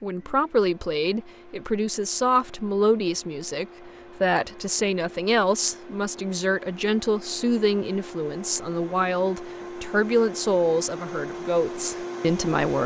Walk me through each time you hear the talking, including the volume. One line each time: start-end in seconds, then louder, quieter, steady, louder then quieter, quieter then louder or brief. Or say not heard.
0.0-12.8 steady.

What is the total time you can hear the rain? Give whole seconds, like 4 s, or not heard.
not heard.